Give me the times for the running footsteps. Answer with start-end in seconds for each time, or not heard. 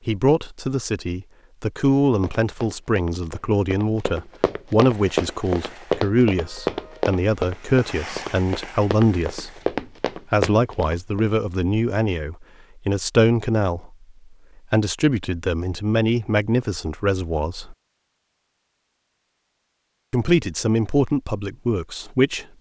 2.0-11.2.